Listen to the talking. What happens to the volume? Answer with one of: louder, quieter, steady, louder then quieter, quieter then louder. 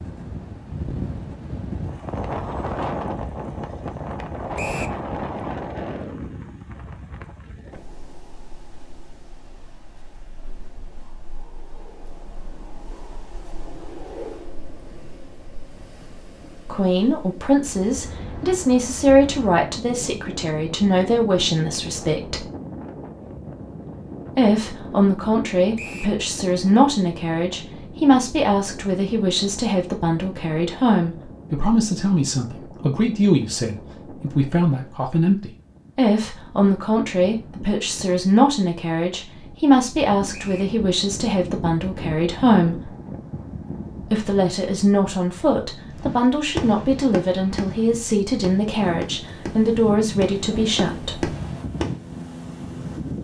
steady.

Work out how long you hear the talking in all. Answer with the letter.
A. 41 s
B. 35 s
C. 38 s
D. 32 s
D.